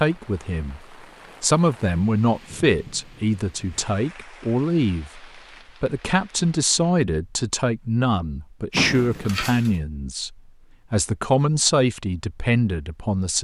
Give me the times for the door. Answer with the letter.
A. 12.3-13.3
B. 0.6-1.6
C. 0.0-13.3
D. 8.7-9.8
D.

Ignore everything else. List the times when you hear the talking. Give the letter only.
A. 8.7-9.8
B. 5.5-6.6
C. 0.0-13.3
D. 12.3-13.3
C.